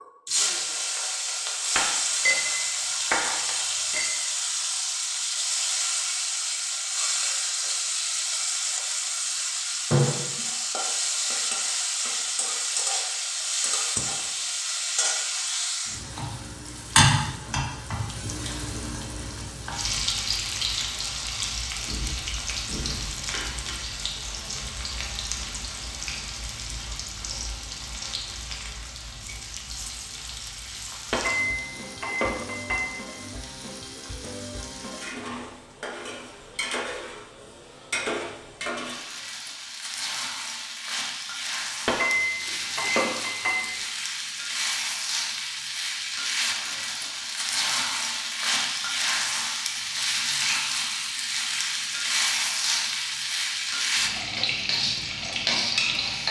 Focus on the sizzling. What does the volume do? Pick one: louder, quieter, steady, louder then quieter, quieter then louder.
quieter then louder.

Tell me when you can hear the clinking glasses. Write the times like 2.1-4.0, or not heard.
1.8-4.1, 31.1-33.0, 41.9-43.8.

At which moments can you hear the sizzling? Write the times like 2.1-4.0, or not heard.
0.0-56.2.